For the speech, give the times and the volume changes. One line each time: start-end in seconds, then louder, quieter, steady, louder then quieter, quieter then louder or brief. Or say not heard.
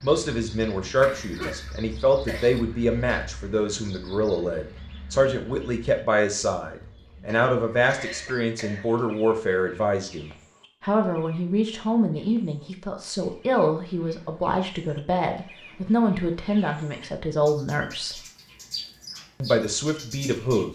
0.0-18.2 steady
19.4-20.7 brief.